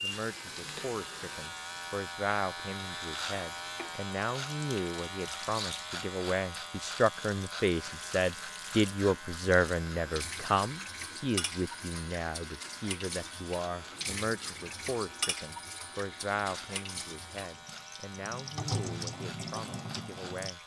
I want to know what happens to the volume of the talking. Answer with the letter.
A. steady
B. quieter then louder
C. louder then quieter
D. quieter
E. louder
C.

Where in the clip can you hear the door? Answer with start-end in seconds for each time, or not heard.
not heard.